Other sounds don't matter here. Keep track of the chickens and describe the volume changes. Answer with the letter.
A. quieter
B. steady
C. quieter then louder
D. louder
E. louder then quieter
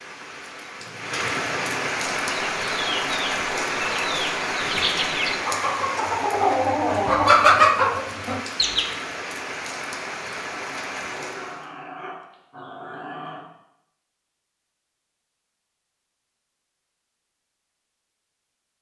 D.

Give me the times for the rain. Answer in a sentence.
You can hear the rain from 0.0 to 11.7 s.